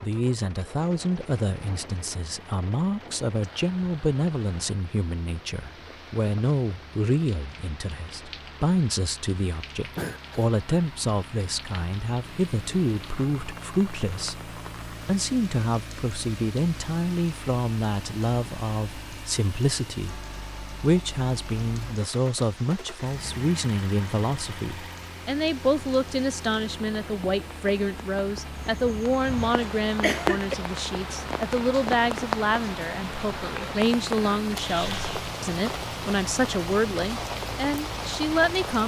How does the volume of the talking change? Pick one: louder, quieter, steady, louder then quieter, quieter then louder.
steady.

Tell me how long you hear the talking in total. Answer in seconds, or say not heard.
39 s.